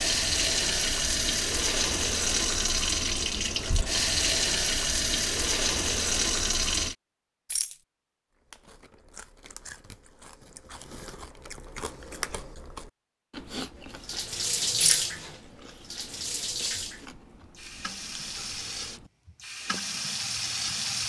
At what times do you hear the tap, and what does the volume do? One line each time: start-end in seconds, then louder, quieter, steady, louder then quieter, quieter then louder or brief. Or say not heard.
0.0-7.0 steady
13.9-21.0 quieter then louder.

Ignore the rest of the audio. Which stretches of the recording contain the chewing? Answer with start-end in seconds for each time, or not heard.
8.3-20.0.